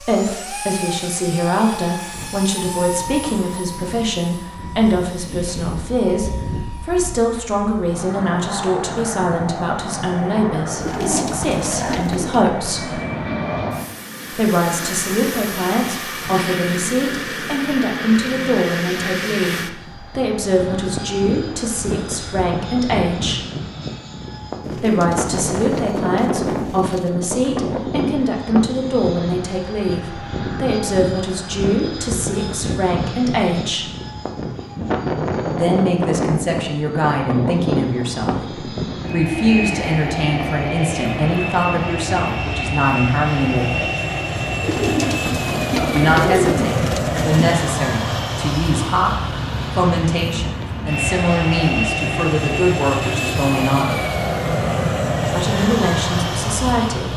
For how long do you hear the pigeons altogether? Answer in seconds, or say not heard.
7 s.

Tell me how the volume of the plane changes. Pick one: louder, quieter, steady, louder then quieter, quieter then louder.
louder.